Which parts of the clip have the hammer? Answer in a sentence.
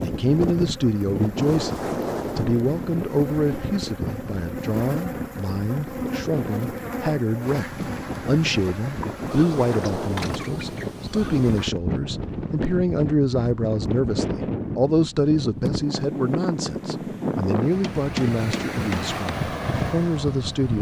The hammer can be heard from 17.8 to 19.1 s.